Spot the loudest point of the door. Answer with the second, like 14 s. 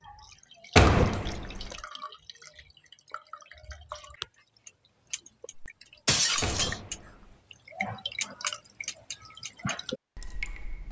1 s.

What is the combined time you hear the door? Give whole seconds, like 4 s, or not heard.
2 s.